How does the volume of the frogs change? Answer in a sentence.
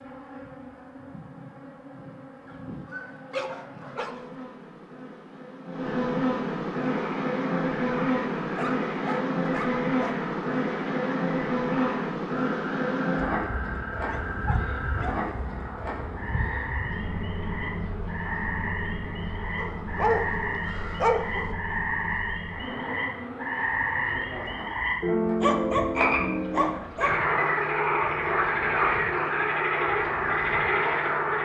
The loudness of the frogs goes up.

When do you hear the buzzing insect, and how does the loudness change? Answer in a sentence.
You can hear the buzzing insect from 0.0 to 31.4 s, getting louder then quieter.